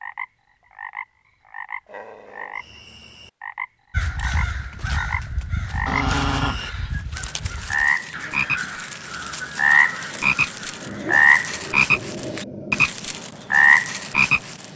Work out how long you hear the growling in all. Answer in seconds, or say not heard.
4 s.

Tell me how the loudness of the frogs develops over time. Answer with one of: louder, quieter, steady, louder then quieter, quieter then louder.
louder.